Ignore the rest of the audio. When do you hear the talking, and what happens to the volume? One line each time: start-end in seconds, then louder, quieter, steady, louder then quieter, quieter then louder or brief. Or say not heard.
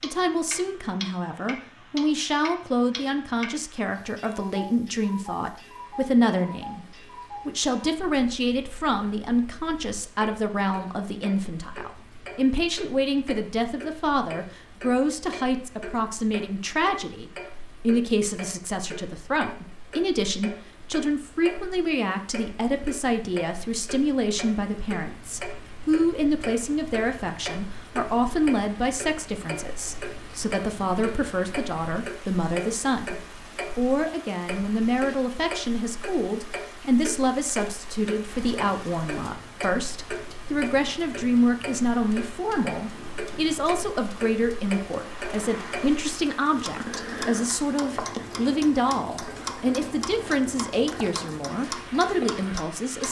0.0-53.0 steady.